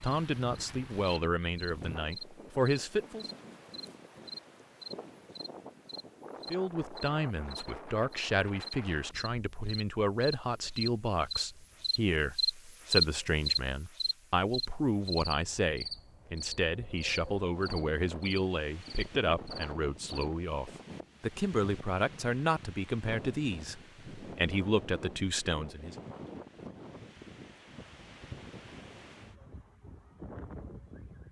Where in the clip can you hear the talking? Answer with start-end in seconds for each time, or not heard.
0.0-3.2, 6.5-25.9.